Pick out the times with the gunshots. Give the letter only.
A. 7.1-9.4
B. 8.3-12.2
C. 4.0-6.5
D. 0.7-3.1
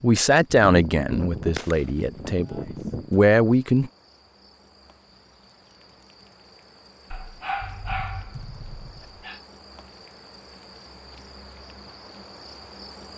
D.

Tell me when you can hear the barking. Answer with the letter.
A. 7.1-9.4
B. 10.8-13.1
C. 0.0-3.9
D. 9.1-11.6
A.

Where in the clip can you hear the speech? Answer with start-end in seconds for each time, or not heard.
0.0-3.9.